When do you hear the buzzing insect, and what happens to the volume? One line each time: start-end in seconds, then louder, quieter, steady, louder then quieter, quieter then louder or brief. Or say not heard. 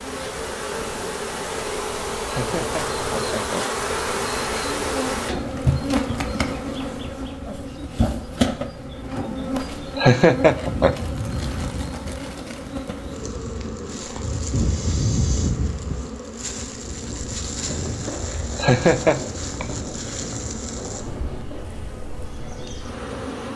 0.0-23.5 quieter.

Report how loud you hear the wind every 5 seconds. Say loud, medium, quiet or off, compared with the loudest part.
medium, medium, loud, loud, medium.